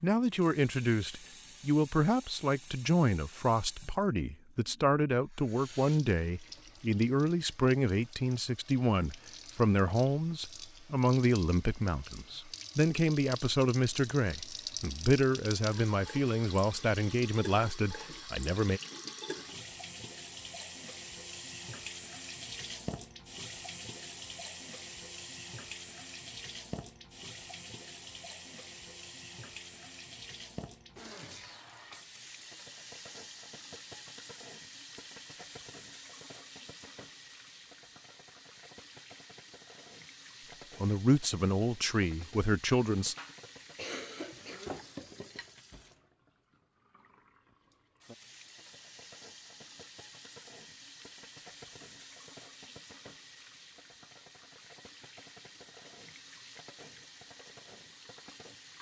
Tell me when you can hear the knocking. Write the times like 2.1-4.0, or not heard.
not heard.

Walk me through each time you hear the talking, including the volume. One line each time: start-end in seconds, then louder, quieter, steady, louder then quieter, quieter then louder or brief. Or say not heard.
0.0-18.8 steady
40.8-43.1 brief.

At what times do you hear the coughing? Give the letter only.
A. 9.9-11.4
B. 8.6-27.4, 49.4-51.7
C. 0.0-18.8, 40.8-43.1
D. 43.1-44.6
D.